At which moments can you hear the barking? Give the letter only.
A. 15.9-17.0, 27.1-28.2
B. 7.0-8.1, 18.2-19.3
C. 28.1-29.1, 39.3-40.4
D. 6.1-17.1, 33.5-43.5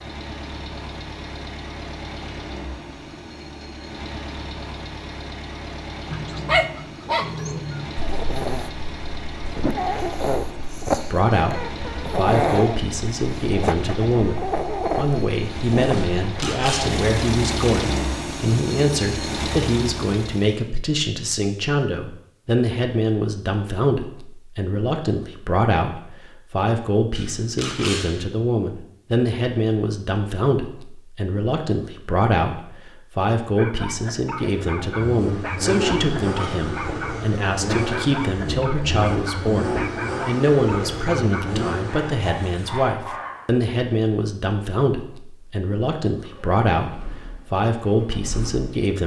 D.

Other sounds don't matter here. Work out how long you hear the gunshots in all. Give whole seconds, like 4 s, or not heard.
2 s.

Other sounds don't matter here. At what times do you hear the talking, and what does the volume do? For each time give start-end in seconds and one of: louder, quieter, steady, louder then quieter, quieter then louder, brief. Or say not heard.
11.0-49.0 steady.